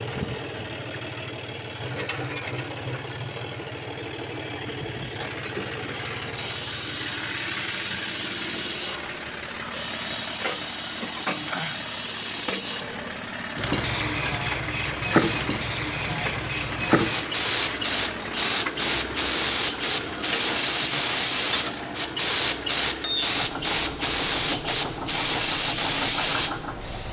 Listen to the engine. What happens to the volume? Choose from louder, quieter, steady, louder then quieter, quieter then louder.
steady.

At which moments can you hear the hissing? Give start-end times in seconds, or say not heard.
6.3-27.0.